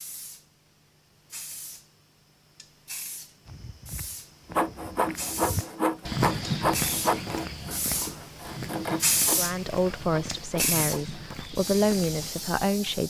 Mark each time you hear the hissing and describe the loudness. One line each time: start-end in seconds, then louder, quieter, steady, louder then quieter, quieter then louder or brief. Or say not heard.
0.0-13.0 louder.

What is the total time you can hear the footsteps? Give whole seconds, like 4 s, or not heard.
9 s.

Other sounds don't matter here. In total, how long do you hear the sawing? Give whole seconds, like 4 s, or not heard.
7 s.